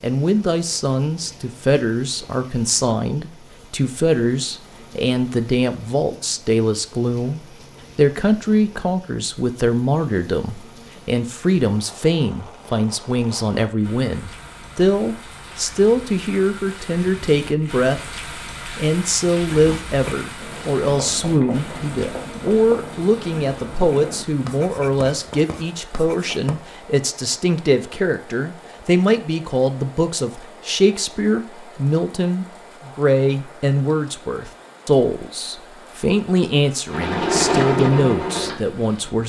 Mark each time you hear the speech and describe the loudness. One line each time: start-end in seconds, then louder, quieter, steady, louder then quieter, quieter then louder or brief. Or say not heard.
0.0-18.0 steady
18.8-39.2 steady.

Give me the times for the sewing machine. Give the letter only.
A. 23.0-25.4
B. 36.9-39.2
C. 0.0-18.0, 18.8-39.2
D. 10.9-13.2
B.